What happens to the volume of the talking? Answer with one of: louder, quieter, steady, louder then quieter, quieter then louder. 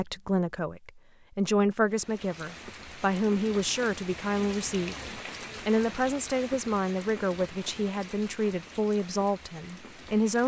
steady.